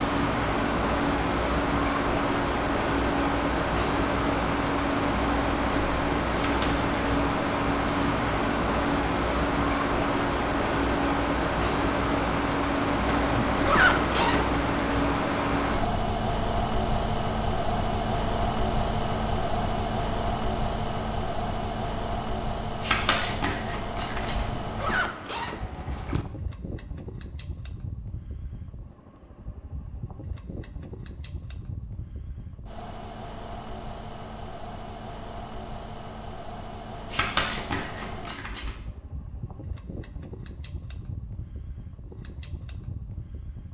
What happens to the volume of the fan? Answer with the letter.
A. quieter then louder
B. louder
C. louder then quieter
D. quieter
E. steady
D.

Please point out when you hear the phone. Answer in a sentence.
The phone can't be heard in this clip.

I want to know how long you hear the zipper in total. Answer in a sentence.
The zipper can be heard for 3 seconds in total.